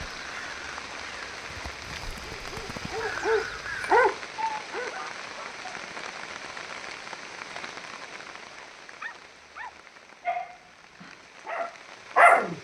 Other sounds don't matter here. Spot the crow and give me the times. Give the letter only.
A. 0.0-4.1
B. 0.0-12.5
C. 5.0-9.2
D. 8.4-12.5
A.